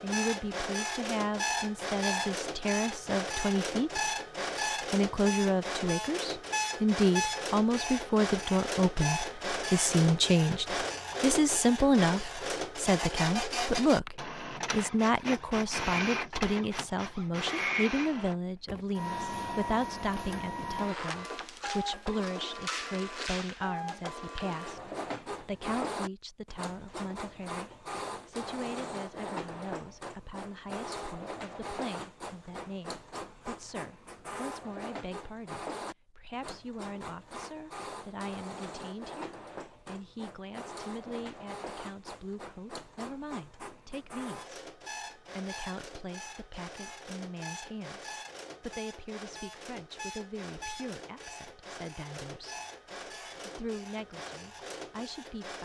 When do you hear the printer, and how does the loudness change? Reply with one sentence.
The printer can be heard from 0.0 to 55.6 s, getting quieter.